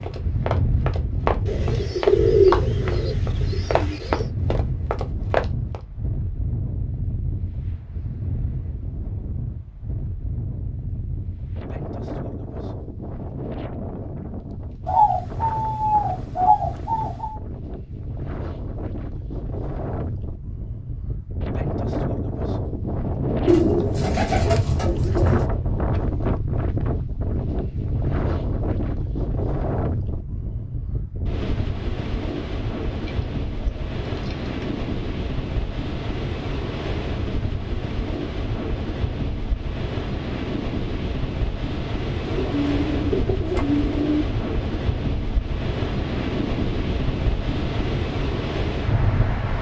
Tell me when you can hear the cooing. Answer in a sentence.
You can hear the cooing from 1.4 to 4.2 s, from 14.8 to 17.4 s, from 23.4 to 25.5 s, from 32.9 to 34.5 s and from 42.2 to 44.2 s.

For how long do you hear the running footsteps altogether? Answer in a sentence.
You can hear the running footsteps for 6 seconds altogether.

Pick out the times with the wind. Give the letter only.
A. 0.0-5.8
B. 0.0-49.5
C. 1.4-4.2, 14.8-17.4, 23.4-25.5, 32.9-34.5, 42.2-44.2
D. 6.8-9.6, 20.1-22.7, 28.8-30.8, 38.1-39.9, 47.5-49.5
B.